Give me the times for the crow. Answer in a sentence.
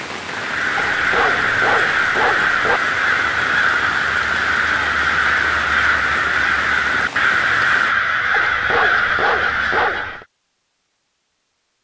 The crow can be heard from 0.2 to 10.2 s.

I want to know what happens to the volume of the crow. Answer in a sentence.
The volume of the crow stays about the same.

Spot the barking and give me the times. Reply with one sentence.
You can hear the barking from 0.8 to 2.8 s and from 8.3 to 10.2 s.